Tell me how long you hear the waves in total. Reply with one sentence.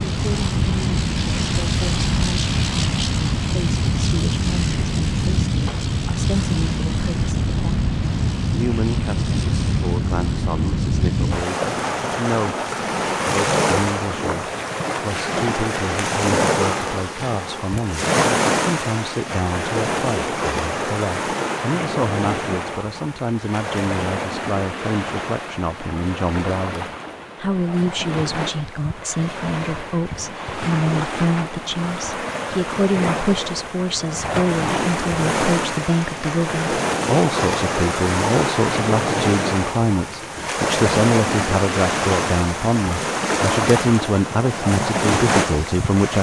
You can hear the waves for 46 seconds altogether.